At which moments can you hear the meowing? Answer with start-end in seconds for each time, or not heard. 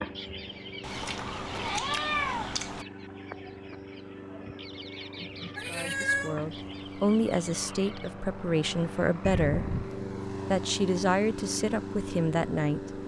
0.8-2.9, 5.5-6.4, 9.2-9.9.